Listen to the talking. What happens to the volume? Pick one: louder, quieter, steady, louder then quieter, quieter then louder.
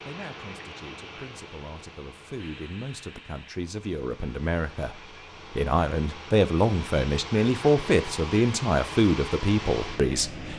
louder.